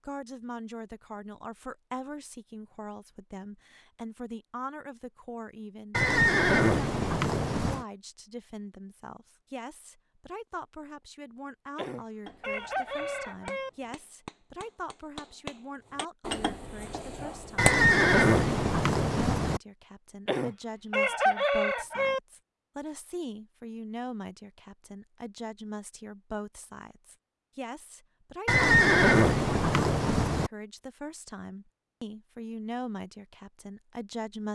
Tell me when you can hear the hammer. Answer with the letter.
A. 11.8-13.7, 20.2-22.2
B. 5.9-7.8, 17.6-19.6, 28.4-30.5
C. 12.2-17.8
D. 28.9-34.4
C.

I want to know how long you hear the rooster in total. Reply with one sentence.
You can hear the rooster for 4 seconds altogether.